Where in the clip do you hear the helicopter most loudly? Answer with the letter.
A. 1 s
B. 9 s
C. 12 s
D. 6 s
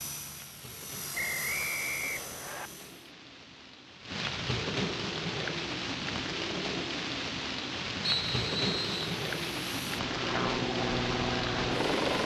C.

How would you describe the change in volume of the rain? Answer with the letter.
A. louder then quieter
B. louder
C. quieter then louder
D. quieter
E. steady
B.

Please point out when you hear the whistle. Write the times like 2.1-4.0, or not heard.
1.1-2.7, 8.0-9.1.